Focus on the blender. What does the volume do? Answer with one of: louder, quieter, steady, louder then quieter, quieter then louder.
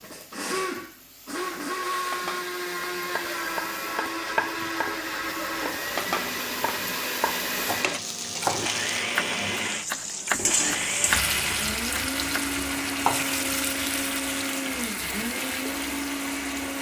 steady.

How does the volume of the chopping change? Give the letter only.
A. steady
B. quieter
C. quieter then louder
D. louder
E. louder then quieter
C.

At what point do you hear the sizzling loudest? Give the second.
11 s.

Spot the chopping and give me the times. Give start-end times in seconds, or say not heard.
2.8-13.3.